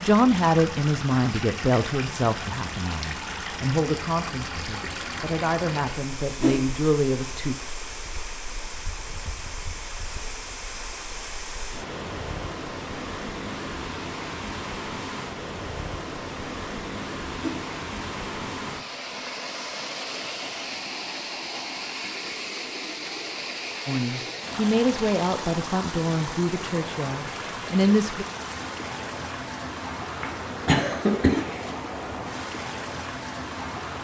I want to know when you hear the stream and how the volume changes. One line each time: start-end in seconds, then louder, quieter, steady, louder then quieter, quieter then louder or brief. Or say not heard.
0.0-33.9 steady.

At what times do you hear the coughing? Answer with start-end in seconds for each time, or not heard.
30.2-31.8.